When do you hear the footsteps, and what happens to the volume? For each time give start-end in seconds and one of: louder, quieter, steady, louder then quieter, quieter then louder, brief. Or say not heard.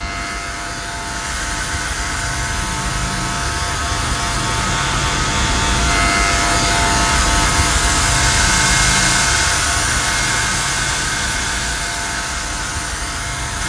not heard.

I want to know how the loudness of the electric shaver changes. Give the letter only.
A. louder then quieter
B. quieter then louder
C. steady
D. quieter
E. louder
A.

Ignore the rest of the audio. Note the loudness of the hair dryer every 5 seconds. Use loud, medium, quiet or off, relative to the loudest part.
medium, loud, loud.